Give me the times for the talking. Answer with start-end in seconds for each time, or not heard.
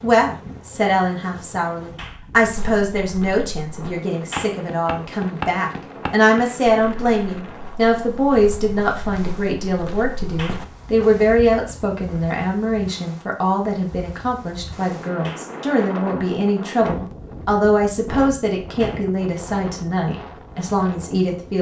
0.0-21.5.